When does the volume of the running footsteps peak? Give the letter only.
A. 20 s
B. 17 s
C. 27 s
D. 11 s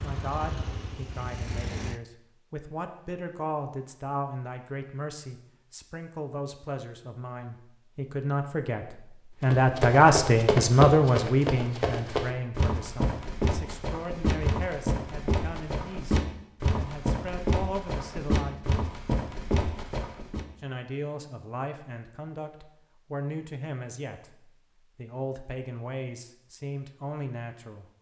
D.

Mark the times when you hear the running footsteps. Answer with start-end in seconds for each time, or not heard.
9.4-20.4.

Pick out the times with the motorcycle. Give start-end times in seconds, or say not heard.
0.0-2.0.